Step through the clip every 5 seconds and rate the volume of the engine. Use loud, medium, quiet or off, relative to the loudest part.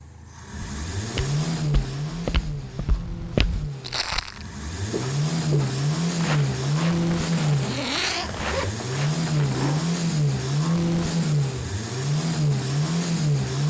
medium, loud, loud.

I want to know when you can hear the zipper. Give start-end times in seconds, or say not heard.
7.5-9.8.